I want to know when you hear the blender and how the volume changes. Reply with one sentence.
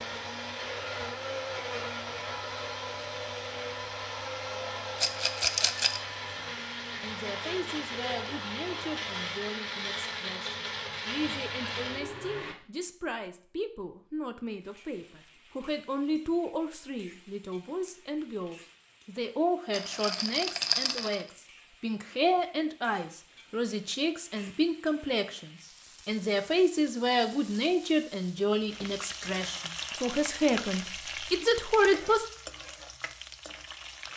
You can hear the blender from 0.0 to 12.6 s, at a steady volume.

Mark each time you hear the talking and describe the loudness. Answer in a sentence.
You can hear the talking from 6.3 to 32.2 s, getting louder.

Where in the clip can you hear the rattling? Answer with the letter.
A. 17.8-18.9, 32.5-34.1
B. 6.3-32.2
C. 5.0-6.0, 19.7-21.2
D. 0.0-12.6
C.